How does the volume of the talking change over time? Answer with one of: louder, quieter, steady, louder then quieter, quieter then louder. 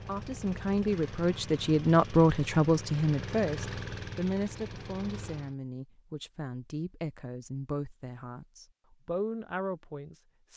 quieter.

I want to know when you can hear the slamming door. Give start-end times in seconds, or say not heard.
not heard.